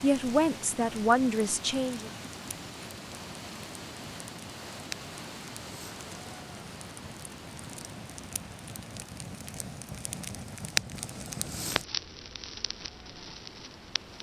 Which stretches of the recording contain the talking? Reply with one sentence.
You can hear the talking from 0.0 to 2.1 s.